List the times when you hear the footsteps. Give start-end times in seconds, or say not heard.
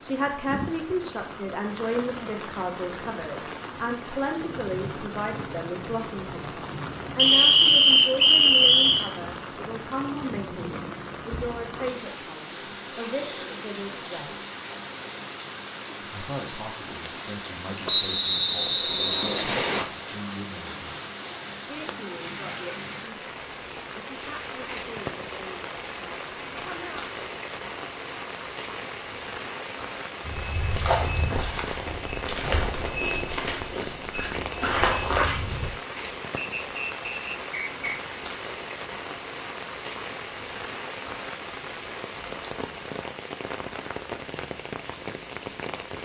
30.2-35.7.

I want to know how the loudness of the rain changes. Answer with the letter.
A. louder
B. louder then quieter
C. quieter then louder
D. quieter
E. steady
E.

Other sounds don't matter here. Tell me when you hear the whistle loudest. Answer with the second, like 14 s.
8 s.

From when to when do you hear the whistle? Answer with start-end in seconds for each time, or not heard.
7.2-9.1, 17.9-19.9, 36.4-38.0.